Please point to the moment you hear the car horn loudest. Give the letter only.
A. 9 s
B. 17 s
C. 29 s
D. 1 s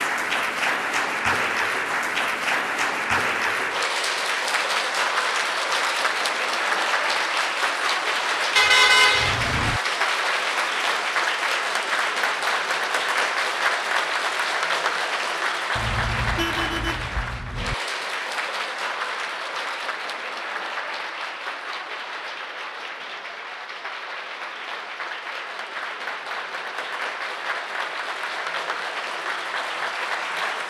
A.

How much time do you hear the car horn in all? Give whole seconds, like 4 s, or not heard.
3 s.